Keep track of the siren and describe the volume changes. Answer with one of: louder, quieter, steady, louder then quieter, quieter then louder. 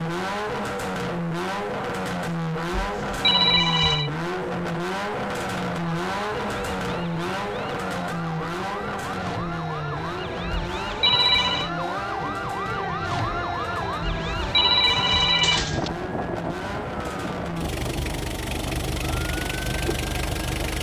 louder then quieter.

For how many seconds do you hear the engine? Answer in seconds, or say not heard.
21 s.